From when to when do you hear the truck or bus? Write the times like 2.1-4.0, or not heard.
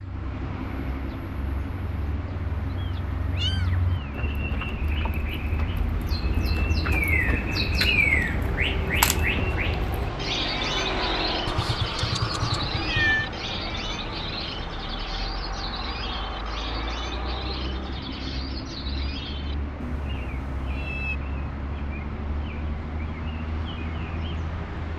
0.0-24.9.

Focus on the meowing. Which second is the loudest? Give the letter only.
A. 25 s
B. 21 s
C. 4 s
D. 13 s
D.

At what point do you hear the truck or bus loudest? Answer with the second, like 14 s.
11 s.